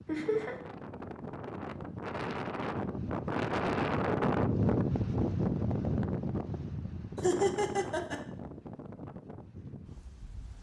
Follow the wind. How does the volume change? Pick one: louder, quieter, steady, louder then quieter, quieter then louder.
louder then quieter.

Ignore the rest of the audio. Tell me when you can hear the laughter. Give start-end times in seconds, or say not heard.
0.1-0.6, 7.2-8.2.